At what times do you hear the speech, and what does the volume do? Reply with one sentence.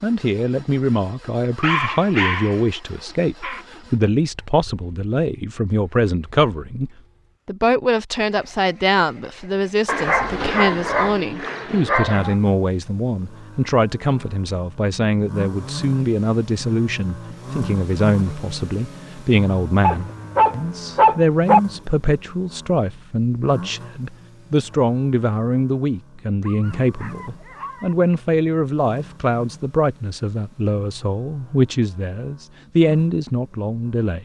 The speech can be heard from 0.0 to 34.2 s, at a steady volume.